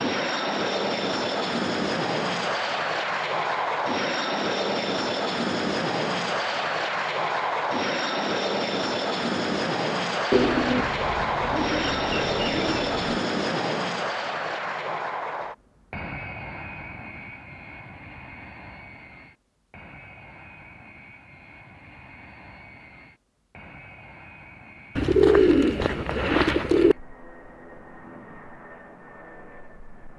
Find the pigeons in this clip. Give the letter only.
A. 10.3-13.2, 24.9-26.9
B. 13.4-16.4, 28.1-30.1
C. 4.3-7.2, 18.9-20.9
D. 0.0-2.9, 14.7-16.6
A.